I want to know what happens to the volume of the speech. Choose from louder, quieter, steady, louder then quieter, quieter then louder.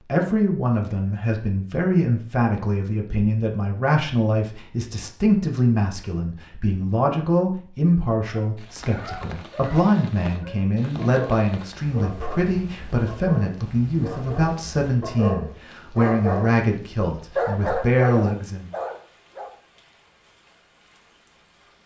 steady.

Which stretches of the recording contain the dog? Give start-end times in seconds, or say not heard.
8.2-16.6, 17.4-19.6.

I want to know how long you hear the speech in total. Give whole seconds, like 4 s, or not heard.
19 s.